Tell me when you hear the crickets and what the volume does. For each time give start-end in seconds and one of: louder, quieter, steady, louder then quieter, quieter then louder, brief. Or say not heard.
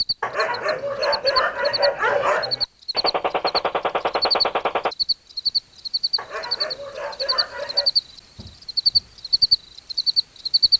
0.0-10.7 louder.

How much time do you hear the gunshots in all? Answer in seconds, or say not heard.
2 s.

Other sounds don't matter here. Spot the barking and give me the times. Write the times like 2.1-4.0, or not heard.
0.2-2.6, 6.2-7.9.